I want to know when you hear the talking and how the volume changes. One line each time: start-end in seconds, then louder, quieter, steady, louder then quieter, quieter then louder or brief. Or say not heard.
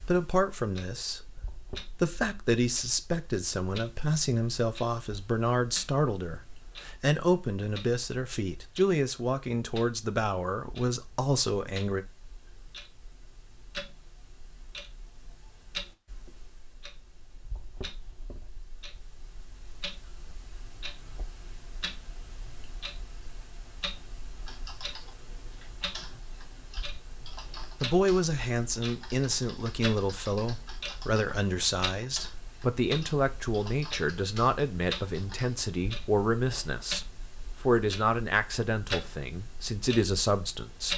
0.0-12.1 steady
27.8-40.9 steady.